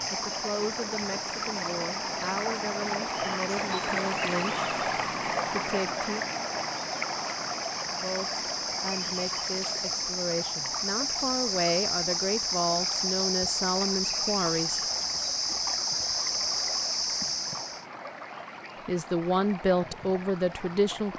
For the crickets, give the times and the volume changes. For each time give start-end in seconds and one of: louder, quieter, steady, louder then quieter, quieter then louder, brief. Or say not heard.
0.0-17.9 louder.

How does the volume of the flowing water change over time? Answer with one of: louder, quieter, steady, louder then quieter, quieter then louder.
quieter.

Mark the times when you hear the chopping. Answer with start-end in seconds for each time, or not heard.
not heard.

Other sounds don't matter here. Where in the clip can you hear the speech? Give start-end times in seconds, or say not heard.
0.1-4.7, 5.5-6.2, 8.0-14.8, 18.9-21.1.